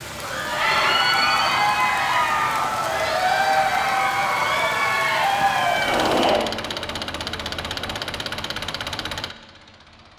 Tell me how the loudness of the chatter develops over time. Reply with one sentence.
The volume of the chatter goes down.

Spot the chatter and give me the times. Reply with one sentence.
The chatter can be heard from 0.1 to 8.3 s.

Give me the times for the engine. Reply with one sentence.
The engine can be heard from 5.7 to 10.1 s.